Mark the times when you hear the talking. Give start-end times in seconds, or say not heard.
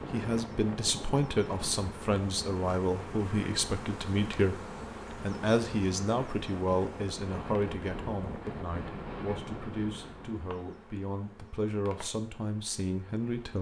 0.0-13.5.